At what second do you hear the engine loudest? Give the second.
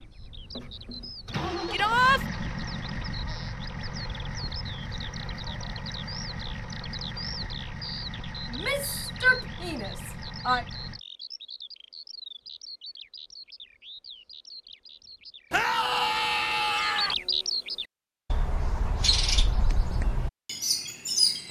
2 s.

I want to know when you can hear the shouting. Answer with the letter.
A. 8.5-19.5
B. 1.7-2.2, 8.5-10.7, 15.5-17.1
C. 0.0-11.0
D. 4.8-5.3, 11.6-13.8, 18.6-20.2
B.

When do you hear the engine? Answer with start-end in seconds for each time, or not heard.
0.0-11.0.